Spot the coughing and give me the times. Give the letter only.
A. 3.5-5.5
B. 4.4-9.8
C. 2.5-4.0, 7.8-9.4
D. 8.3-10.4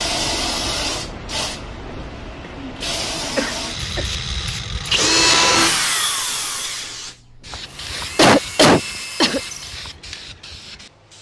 C.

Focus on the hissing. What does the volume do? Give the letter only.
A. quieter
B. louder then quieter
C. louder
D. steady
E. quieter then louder
A.